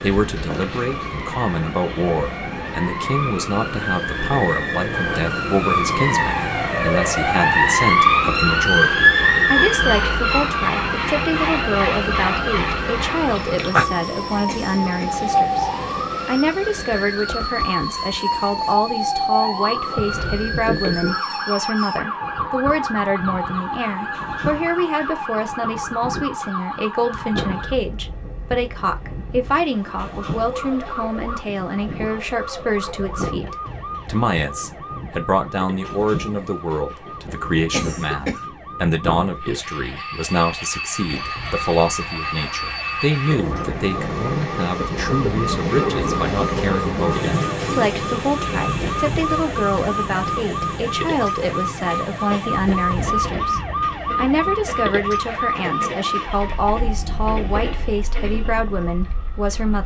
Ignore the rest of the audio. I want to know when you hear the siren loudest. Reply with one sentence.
The loudest moment of the siren is at 9 seconds.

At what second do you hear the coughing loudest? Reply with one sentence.
The volume of the coughing peaks at 38 seconds.